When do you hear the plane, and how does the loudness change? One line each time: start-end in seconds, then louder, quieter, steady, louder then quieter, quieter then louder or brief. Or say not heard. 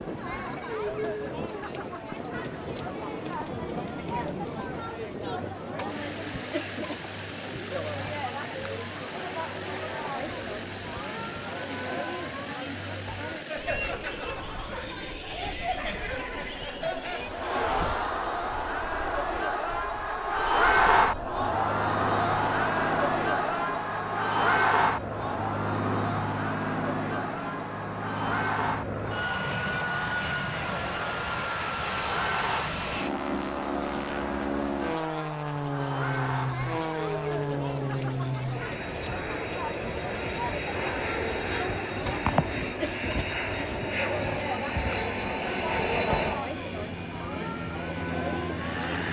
0.0-49.0 louder.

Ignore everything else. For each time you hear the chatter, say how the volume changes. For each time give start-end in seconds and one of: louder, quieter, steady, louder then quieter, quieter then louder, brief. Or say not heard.
0.0-49.0 louder then quieter.